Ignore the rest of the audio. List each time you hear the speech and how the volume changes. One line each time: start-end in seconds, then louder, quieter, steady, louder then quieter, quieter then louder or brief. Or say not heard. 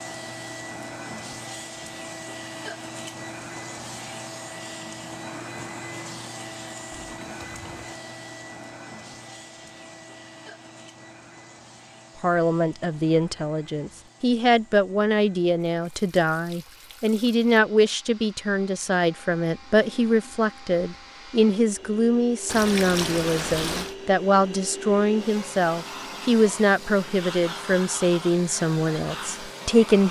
12.2-30.0 steady.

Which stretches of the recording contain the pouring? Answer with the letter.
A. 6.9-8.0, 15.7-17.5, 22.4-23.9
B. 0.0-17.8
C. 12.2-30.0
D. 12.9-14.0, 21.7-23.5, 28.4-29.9
A.